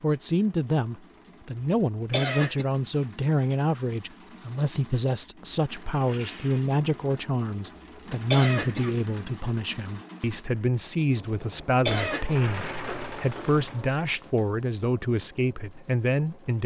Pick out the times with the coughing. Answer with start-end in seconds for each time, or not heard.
2.1-2.6, 8.3-9.0, 11.8-12.3.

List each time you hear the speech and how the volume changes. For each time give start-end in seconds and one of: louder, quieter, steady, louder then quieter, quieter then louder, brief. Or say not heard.
0.0-16.6 steady.